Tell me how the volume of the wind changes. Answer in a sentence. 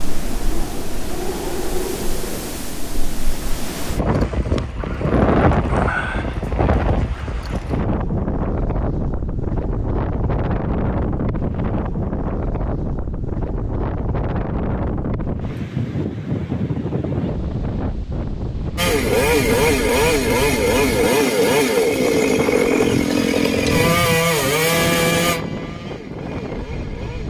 The volume of the wind stays about the same.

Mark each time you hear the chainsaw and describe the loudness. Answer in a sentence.
The chainsaw can be heard from 18.8 to 27.2 s, getting quieter.